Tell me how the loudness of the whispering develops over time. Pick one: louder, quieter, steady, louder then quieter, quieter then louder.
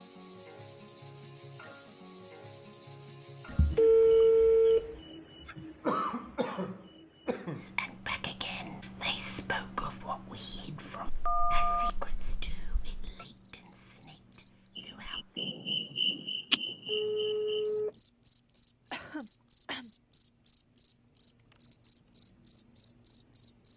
quieter.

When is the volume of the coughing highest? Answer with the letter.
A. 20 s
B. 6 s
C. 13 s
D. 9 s
B.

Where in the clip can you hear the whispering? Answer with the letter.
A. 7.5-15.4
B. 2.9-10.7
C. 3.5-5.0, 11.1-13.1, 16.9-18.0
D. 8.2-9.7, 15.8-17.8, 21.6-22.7
A.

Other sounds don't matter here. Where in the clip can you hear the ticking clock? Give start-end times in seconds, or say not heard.
not heard.